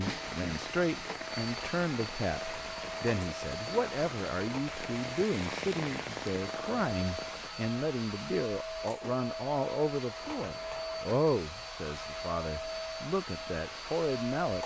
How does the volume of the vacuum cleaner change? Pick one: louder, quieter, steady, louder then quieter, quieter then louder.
steady.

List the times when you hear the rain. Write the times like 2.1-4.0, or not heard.
0.0-7.5.